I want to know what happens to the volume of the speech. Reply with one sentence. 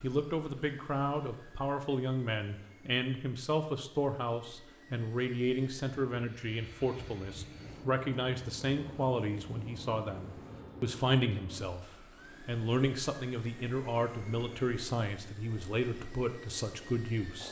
The loudness of the speech stays about the same.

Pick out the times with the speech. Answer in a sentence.
You can hear the speech from 0.0 to 17.4 s.